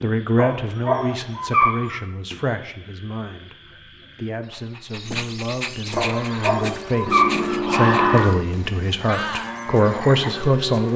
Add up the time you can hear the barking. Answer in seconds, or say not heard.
3 s.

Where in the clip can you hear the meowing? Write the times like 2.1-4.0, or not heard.
7.0-8.2.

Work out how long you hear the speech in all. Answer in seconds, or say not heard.
11 s.